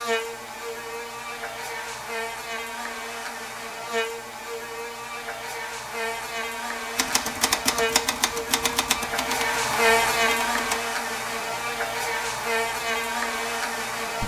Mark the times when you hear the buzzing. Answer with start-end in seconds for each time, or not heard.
0.0-14.2.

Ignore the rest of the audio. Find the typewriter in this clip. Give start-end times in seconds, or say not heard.
7.0-10.8.